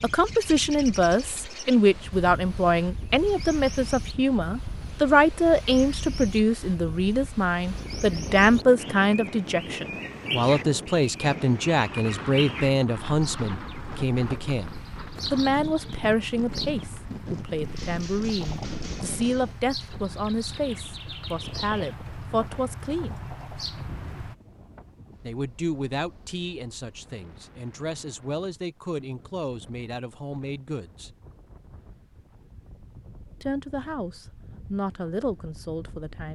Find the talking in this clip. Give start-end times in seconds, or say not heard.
0.0-14.7, 15.3-23.2, 25.2-31.1, 33.4-36.2.